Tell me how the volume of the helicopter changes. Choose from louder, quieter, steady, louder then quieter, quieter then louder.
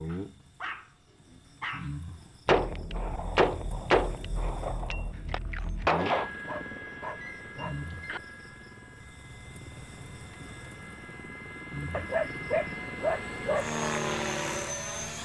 quieter then louder.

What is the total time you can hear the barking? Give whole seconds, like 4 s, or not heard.
6 s.